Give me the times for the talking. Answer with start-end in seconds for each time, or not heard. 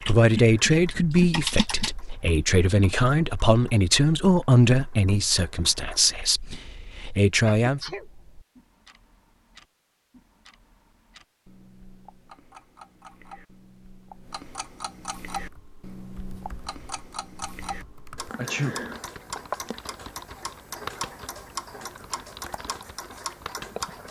0.0-7.8.